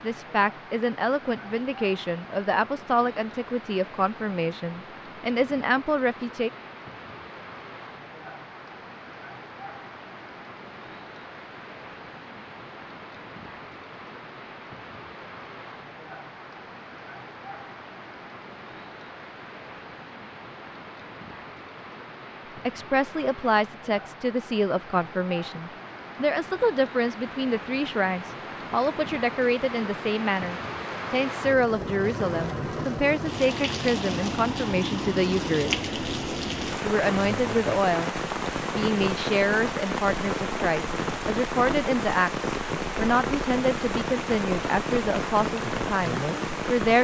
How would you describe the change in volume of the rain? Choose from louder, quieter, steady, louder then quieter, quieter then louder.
louder.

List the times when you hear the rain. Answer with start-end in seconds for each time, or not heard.
0.0-46.9.